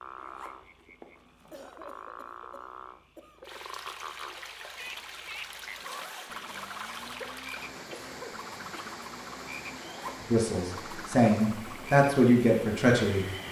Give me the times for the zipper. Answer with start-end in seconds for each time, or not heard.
0.1-1.6, 4.8-7.2, 9.8-10.3.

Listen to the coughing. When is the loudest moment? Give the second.
8 s.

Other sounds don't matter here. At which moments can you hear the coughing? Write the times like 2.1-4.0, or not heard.
1.5-3.6, 7.1-8.9.